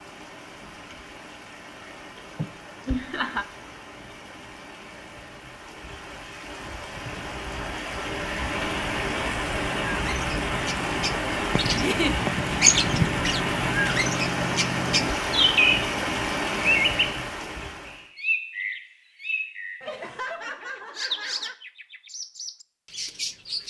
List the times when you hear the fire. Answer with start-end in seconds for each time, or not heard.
not heard.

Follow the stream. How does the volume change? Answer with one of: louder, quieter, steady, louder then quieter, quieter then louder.
louder.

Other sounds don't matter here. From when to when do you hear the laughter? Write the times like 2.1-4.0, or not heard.
2.4-3.5, 11.8-12.2, 19.8-21.6.